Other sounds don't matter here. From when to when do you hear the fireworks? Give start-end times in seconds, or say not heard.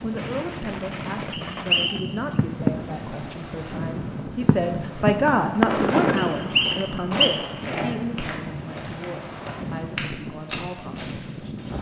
0.1-6.8.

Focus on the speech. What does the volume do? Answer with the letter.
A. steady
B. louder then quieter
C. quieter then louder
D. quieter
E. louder
B.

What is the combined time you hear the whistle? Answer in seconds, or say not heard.
2 s.